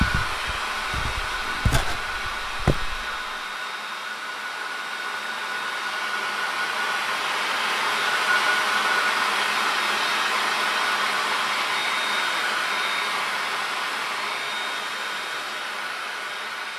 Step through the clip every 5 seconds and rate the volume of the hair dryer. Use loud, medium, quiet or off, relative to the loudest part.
medium, loud, loud, medium.